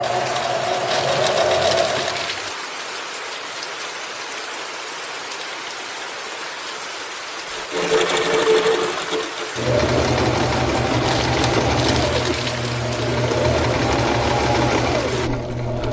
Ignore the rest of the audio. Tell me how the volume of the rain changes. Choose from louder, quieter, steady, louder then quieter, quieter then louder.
steady.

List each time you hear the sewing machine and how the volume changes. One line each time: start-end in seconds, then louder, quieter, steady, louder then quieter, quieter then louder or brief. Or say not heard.
0.0-2.4 brief
7.5-15.8 steady.